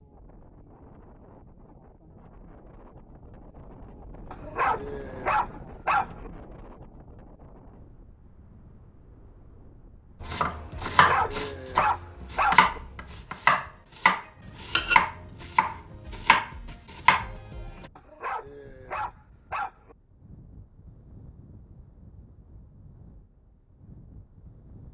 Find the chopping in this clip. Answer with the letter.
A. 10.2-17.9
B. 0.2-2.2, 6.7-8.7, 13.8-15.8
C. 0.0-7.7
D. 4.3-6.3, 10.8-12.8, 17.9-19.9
A.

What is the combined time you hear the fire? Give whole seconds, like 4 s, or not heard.
not heard.